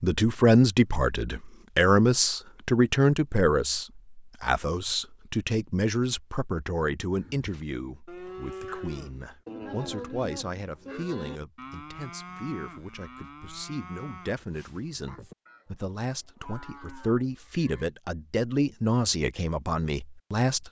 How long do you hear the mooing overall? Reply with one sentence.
You can hear the mooing for 11 seconds altogether.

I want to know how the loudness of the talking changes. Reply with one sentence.
The loudness of the talking goes down, then up.